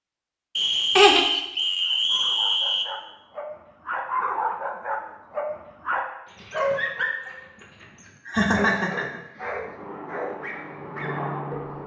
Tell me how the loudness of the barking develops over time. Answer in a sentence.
The volume of the barking goes up, then down.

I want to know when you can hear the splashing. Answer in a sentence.
You can't hear the splashing here.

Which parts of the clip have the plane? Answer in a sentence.
You can hear the plane from 9.4 to 11.8 s.